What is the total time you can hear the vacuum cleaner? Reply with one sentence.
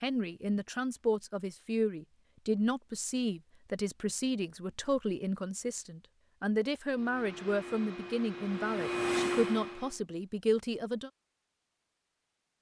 You can hear the vacuum cleaner for 3 seconds altogether.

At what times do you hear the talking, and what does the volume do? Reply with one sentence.
The talking can be heard from 0.0 to 11.1 s, at a steady volume.